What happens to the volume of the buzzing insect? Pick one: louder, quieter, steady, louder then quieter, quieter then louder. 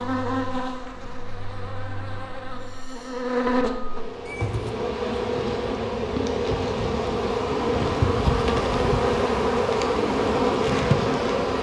louder.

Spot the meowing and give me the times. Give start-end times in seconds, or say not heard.
4.2-4.7.